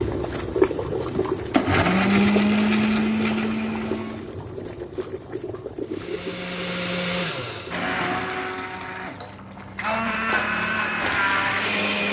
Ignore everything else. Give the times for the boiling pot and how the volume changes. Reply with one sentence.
The boiling pot can be heard from 0.0 to 11.8 s, getting quieter.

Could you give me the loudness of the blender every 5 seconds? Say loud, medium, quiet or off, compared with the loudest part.
loud, medium, loud.